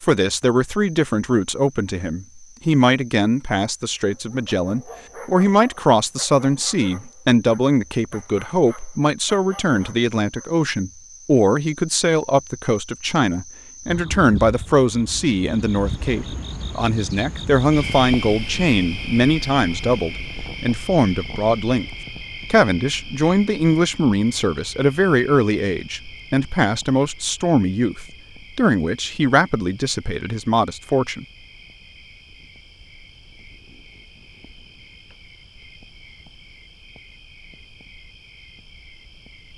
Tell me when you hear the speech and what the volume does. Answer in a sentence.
You can hear the speech from 0.0 to 21.9 s, at a steady volume; and from 22.5 to 31.2 s, at a steady volume.